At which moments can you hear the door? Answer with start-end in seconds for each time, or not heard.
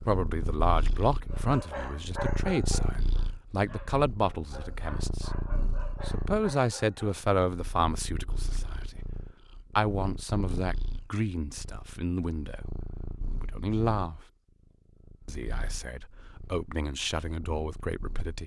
not heard.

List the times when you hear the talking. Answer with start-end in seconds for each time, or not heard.
0.0-5.3, 6.0-8.8, 9.8-12.6, 13.3-14.2, 15.2-18.4.